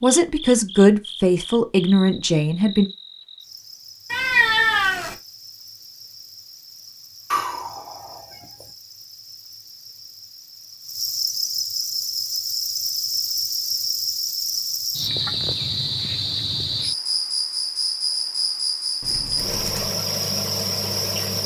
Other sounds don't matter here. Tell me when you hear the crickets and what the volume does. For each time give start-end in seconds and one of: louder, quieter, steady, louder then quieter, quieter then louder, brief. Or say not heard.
0.0-21.4 quieter then louder.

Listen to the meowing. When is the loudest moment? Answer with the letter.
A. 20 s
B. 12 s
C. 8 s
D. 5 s
D.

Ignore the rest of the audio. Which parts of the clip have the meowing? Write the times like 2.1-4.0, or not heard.
4.1-5.2, 7.3-8.7, 19.0-19.9.